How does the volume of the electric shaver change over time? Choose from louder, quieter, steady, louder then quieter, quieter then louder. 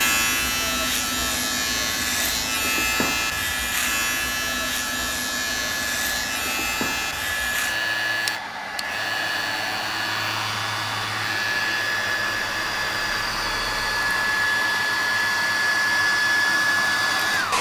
quieter.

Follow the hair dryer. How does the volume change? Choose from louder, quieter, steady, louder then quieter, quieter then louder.
louder.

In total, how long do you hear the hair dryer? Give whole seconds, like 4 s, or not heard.
17 s.